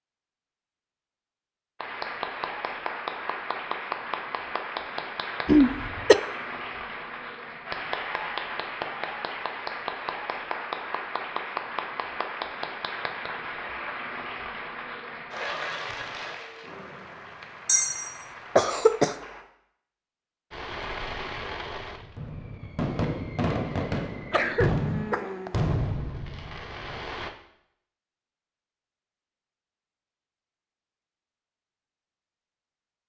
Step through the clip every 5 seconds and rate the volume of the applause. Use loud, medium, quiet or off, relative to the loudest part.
loud, loud, loud, medium, off, off, off.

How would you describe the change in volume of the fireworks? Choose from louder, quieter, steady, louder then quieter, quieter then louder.
louder then quieter.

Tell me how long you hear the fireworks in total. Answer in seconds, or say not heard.
7 s.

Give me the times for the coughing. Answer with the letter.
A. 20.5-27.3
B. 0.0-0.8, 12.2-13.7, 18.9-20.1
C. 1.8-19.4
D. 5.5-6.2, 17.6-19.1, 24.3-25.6
D.